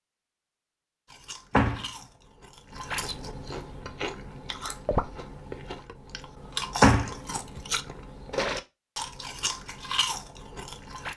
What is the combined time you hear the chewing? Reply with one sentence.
You can hear the chewing for 10 seconds altogether.